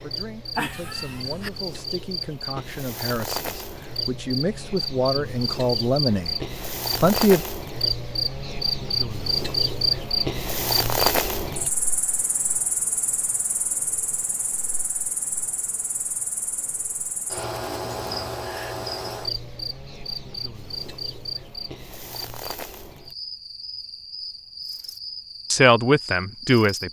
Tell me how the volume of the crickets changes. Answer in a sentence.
The volume of the crickets goes up, then down.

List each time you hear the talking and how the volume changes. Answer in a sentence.
You can hear the talking from 0.0 to 7.4 s, getting louder; and briefly from 25.5 to 26.8 s.